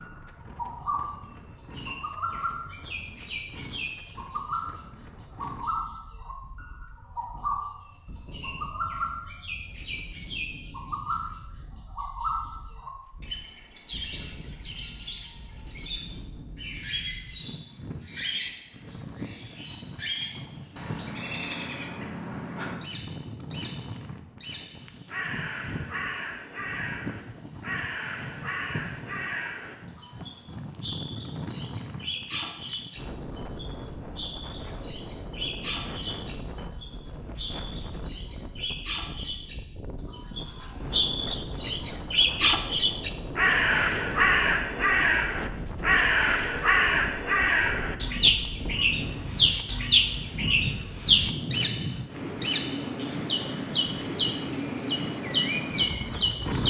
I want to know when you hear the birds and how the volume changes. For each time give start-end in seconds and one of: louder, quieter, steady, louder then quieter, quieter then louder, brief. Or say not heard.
0.0-56.6 louder.